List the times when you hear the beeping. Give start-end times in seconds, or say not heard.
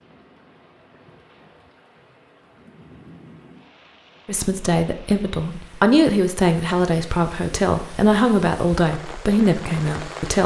not heard.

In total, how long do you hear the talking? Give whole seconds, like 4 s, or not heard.
6 s.